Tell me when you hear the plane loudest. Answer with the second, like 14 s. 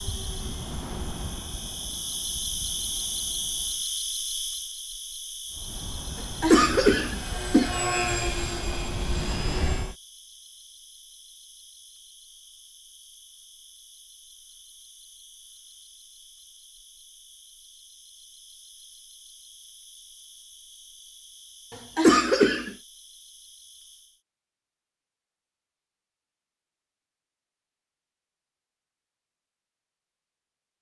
8 s.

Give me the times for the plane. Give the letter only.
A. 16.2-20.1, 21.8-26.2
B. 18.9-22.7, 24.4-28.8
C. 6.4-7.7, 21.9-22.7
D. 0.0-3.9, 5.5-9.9
D.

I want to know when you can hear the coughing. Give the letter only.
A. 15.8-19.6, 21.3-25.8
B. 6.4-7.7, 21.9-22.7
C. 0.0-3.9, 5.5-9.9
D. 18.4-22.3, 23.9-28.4
B.